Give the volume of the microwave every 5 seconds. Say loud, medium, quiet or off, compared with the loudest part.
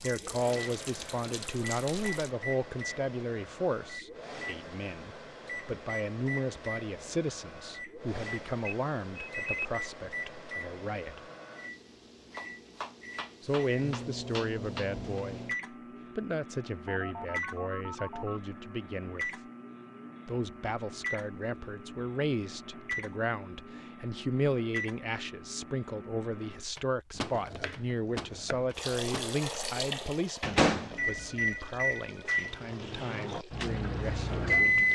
quiet, quiet, quiet, quiet, quiet, quiet, loud.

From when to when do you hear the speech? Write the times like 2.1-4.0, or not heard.
0.0-11.2, 13.4-15.4, 16.1-19.4, 20.2-34.9.